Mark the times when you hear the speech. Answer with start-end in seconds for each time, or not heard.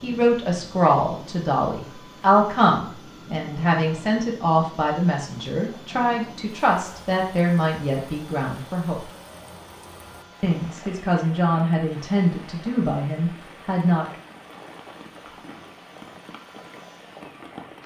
0.0-9.0, 10.4-14.1.